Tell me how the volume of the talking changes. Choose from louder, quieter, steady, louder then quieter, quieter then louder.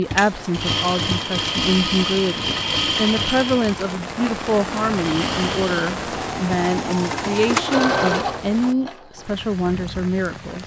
steady.